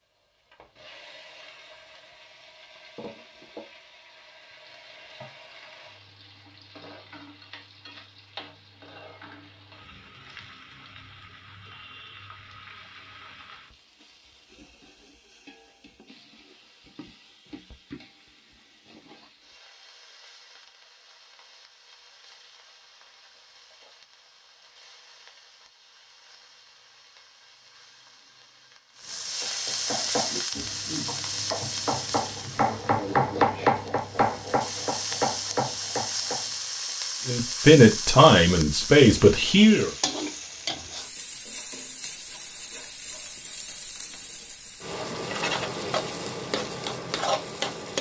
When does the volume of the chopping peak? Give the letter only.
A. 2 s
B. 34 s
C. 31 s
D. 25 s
B.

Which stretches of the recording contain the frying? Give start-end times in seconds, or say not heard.
0.0-47.9.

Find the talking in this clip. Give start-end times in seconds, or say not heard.
37.2-39.9.